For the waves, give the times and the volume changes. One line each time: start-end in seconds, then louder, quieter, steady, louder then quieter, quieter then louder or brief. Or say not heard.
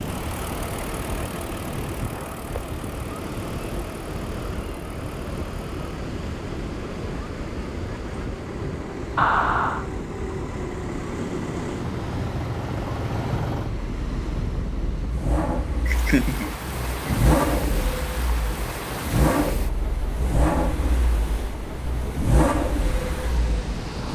0.0-24.1 steady.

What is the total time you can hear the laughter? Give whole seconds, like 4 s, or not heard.
2 s.